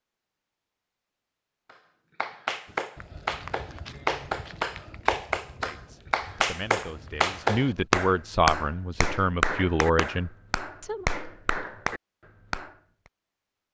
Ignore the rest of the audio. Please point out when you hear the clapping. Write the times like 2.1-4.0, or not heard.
1.7-12.8.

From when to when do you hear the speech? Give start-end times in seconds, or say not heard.
5.6-11.1.